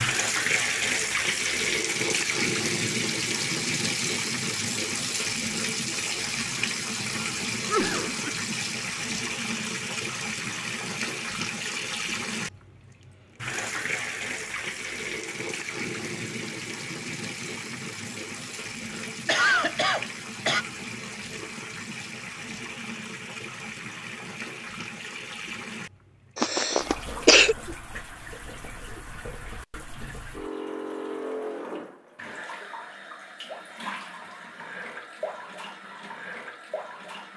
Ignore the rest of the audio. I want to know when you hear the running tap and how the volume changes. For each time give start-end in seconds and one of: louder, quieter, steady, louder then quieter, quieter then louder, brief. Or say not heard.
0.0-37.3 quieter.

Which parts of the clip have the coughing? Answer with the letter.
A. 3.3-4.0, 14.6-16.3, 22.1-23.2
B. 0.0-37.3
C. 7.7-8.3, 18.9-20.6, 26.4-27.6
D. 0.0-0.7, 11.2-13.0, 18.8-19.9
C.